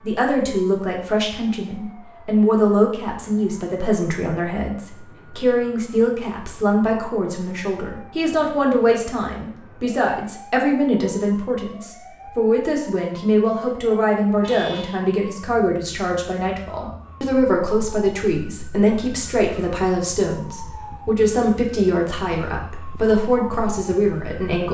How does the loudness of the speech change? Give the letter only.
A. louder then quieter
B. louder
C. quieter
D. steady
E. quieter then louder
D.